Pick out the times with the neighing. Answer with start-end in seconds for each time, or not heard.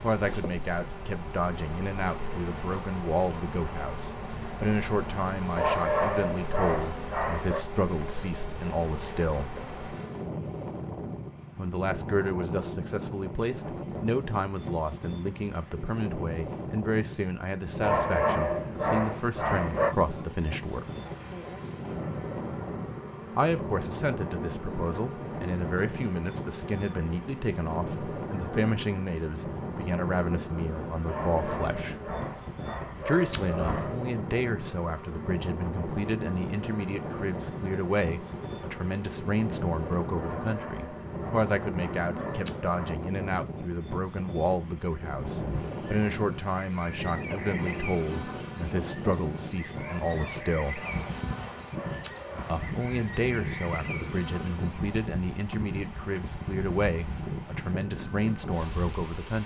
not heard.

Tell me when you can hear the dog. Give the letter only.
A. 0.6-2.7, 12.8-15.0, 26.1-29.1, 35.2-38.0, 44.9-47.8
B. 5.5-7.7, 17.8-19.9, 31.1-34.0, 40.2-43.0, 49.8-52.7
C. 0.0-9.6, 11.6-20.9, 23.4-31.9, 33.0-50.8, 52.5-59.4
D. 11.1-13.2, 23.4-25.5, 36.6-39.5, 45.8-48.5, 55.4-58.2
B.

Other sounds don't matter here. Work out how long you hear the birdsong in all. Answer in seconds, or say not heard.
not heard.